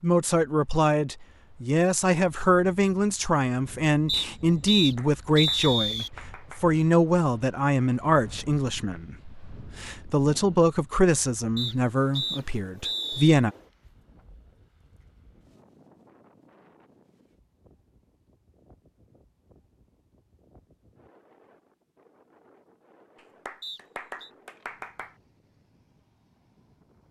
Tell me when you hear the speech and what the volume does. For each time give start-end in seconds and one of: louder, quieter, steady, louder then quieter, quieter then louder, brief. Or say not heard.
0.0-13.5 steady.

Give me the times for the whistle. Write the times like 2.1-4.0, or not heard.
4.0-6.1, 11.6-13.4, 23.6-24.3.